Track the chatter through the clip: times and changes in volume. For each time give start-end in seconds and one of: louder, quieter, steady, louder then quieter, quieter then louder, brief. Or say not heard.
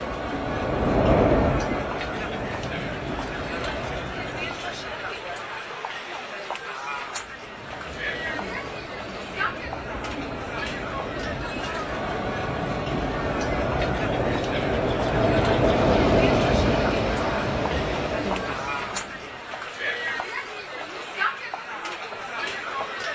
0.0-23.1 steady.